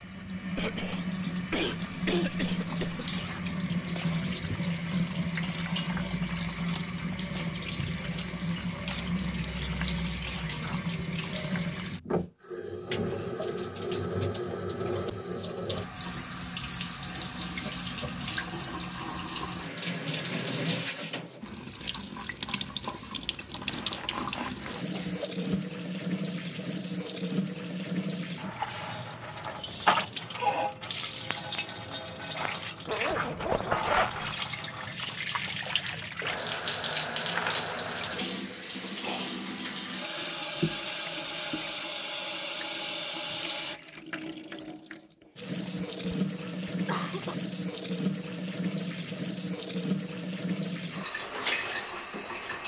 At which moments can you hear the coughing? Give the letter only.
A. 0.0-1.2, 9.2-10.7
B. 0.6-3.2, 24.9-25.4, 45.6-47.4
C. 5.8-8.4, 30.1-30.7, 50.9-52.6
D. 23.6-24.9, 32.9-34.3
B.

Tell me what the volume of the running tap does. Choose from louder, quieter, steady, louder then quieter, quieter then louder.
steady.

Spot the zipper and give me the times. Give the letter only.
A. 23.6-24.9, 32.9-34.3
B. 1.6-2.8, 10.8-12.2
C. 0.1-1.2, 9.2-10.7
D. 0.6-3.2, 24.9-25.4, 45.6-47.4
A.